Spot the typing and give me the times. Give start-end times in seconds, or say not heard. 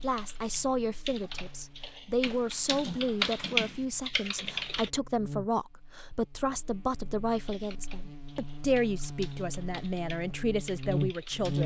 0.0-4.9, 7.5-11.6.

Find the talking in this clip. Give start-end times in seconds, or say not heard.
0.0-11.6.